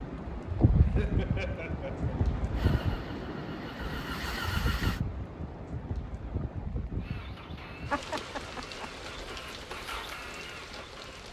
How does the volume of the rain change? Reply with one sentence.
The volume of the rain goes down.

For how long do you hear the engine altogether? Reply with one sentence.
The engine can be heard for 7 seconds in total.